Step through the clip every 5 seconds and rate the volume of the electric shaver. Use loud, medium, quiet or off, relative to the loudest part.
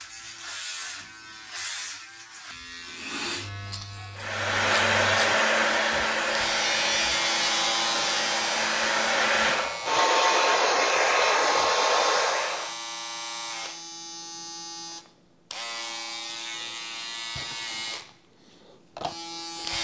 medium, loud, medium, medium.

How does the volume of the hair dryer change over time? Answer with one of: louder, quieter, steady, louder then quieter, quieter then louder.
quieter then louder.